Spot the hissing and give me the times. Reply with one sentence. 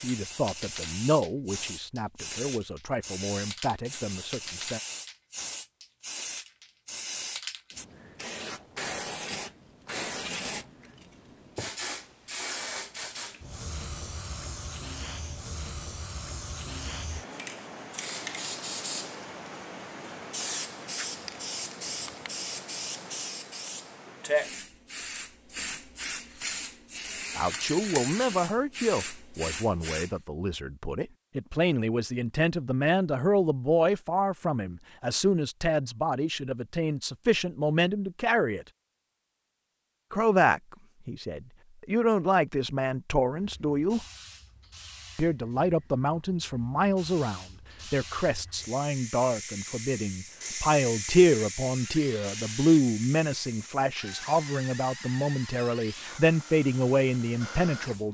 You can hear the hissing from 0.0 to 30.1 s and from 43.4 to 58.0 s.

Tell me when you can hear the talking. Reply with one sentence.
You can hear the talking from 0.0 to 4.8 s, from 27.4 to 38.6 s, from 40.1 to 44.0 s and from 45.1 to 58.0 s.